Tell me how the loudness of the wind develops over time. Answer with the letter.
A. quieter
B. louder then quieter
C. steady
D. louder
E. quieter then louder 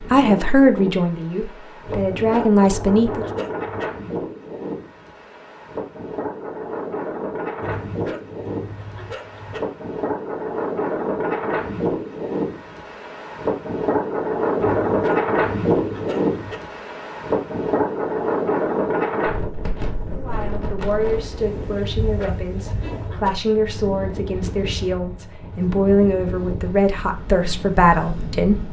B.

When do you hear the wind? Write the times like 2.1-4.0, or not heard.
0.0-28.6.